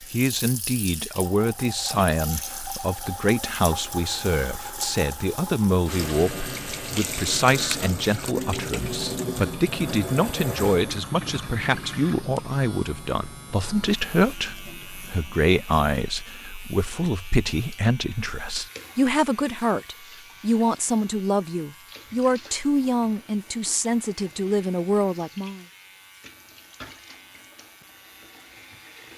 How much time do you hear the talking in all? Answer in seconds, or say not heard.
26 s.